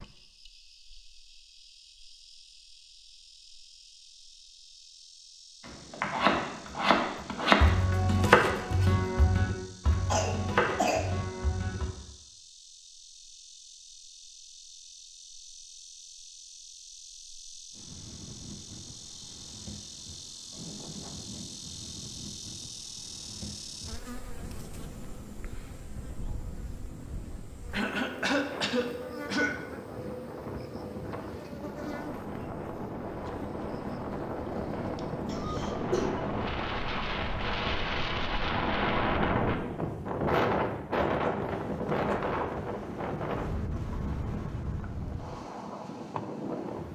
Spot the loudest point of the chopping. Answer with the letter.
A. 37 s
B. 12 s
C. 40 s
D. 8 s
D.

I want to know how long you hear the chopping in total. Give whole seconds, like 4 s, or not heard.
6 s.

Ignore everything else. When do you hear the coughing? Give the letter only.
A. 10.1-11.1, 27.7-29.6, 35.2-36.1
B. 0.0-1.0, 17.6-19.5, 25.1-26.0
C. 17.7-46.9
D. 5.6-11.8
A.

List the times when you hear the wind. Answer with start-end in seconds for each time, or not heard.
17.7-46.9.